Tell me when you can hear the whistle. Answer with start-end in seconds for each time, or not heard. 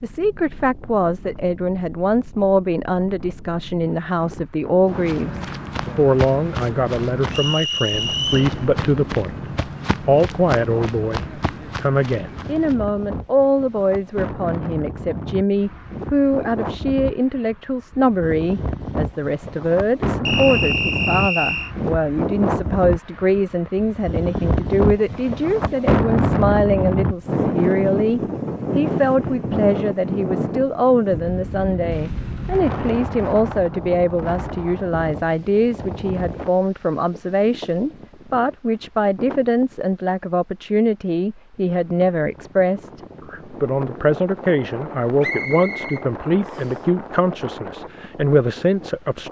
7.3-8.6, 20.2-21.7, 45.2-46.8.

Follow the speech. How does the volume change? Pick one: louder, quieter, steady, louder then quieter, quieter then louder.
steady.